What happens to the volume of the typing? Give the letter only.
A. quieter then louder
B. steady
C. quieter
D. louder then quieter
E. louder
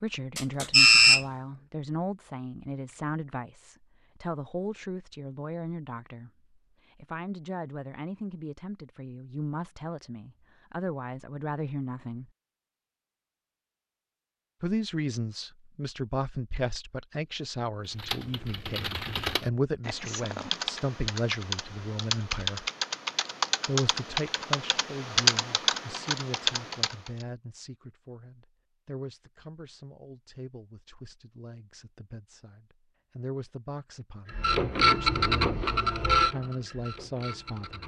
E.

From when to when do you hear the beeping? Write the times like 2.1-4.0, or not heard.
0.3-1.2.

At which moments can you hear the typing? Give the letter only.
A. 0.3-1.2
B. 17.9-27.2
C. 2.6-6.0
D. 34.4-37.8
B.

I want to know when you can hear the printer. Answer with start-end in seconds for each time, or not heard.
34.4-37.8.